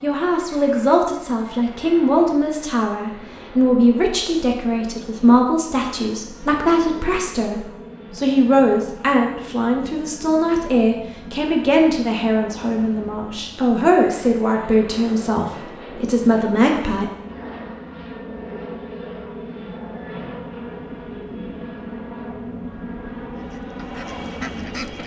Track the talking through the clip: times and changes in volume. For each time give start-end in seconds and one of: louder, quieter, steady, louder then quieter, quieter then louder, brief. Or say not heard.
0.0-17.1 steady.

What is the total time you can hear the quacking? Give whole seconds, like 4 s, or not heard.
2 s.